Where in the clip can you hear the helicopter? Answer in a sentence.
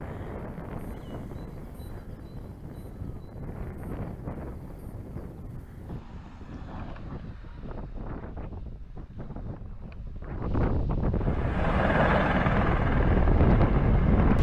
You can hear the helicopter from 11.2 to 14.3 s.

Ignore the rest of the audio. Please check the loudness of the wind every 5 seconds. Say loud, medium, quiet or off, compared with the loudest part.
quiet, quiet, loud.